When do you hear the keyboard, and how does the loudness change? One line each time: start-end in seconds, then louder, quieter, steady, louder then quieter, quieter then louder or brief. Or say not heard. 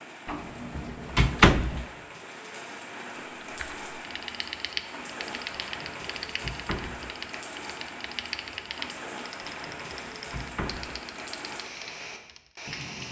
3.4-12.5 quieter.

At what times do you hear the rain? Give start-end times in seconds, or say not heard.
0.0-13.0.